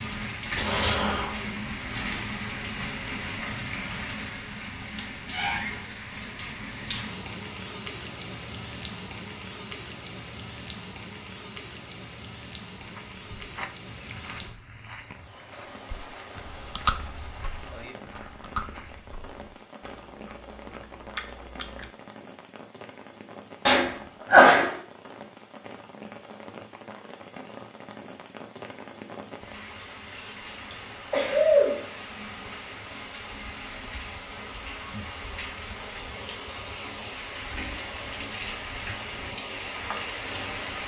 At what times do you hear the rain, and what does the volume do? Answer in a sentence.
You can hear the rain from 0.0 to 40.8 s, getting quieter then louder.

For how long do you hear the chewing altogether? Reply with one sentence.
You can hear the chewing for 6 seconds altogether.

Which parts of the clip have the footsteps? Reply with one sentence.
The footsteps can be heard from 12.8 to 19.1 s.